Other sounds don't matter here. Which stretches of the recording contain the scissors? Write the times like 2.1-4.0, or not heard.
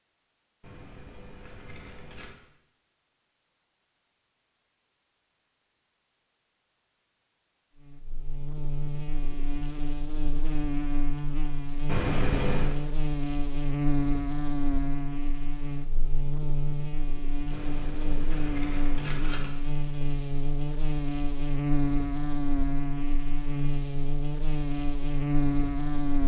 0.6-2.4, 11.8-12.8, 17.5-19.5.